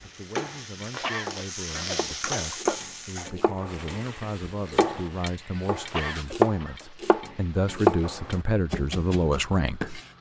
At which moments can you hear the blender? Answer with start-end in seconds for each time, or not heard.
not heard.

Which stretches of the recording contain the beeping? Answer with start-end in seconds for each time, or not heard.
not heard.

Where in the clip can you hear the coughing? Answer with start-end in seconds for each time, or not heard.
0.8-3.3, 5.9-6.8.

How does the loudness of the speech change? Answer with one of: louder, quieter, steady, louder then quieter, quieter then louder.
louder.